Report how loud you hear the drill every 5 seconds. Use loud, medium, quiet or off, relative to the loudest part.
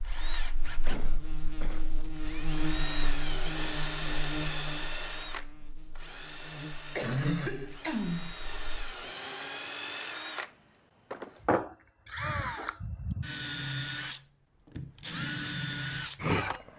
medium, medium, loud, loud.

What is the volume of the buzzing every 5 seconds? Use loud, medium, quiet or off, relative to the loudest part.
loud, loud, off, off.